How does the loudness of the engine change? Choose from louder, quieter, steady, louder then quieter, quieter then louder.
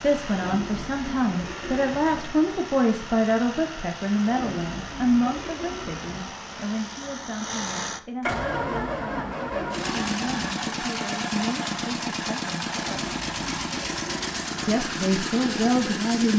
louder.